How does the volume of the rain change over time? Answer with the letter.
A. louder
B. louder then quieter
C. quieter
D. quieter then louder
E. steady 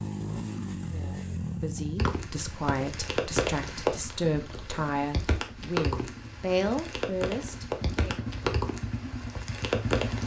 E.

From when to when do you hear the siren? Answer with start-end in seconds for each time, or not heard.
not heard.